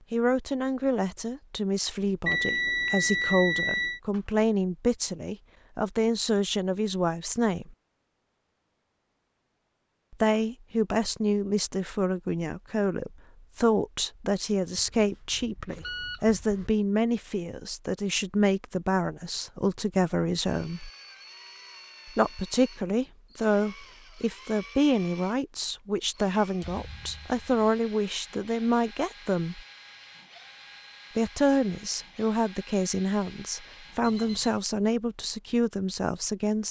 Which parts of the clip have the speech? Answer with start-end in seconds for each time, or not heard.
0.1-7.8, 10.1-20.9, 22.1-29.6, 31.1-36.6.